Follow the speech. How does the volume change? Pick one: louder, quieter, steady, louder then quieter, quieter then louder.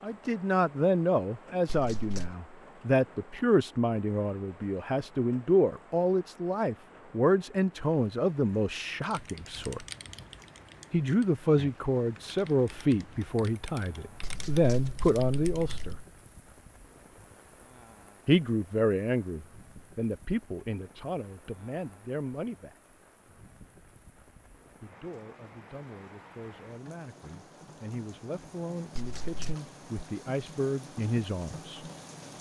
quieter.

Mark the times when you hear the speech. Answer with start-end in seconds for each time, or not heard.
0.0-9.8, 10.9-15.9, 18.2-22.8, 24.8-31.8.